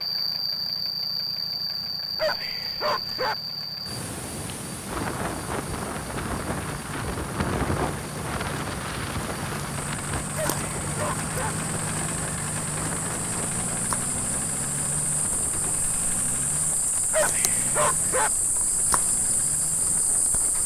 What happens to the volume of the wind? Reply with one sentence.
The loudness of the wind goes down.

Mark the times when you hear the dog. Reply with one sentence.
You can hear the dog from 2.1 to 3.4 s, from 10.3 to 11.6 s and from 17.1 to 18.3 s.